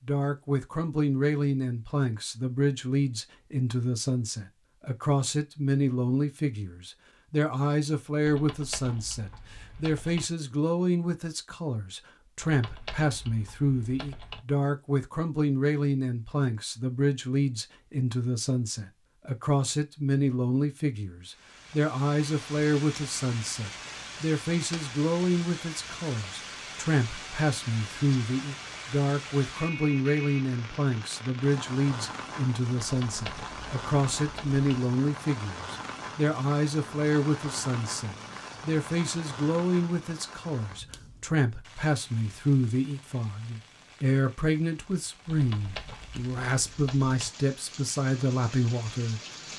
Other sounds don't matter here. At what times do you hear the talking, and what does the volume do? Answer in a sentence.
You can hear the talking from 0.1 to 49.5 s, at a steady volume.